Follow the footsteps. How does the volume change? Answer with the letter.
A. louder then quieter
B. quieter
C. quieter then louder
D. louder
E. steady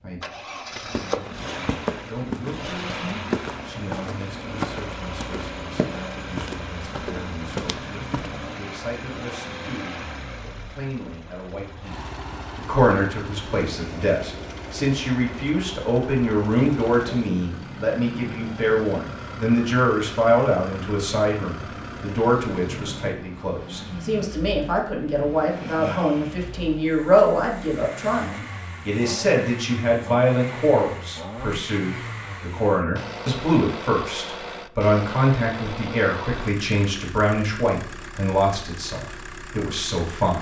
E.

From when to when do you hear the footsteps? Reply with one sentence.
The footsteps can be heard from 0.8 to 8.6 s.